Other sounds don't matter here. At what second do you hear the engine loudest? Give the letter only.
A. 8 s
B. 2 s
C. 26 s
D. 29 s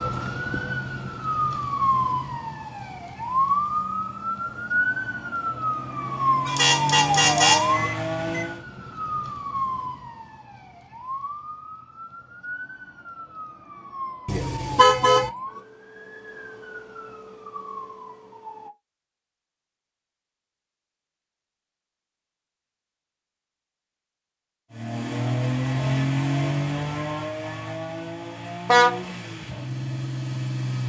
C.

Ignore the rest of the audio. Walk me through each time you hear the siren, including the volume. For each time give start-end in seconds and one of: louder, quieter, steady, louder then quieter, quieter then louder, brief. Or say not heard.
0.0-18.7 quieter.